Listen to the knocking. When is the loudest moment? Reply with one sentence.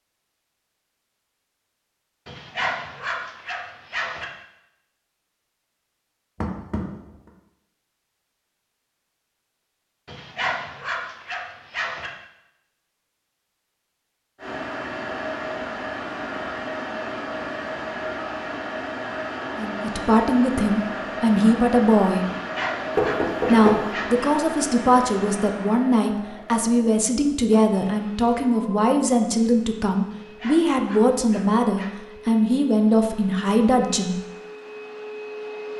The volume of the knocking peaks at 23 seconds.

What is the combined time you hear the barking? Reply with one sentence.
You can hear the barking for 8 seconds altogether.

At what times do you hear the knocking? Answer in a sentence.
The knocking can be heard from 6.4 to 7.0 s and from 22.9 to 23.9 s.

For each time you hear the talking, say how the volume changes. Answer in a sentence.
You can hear the talking briefly from 19.6 to 22.2 s; and from 23.4 to 34.1 s, at a steady volume.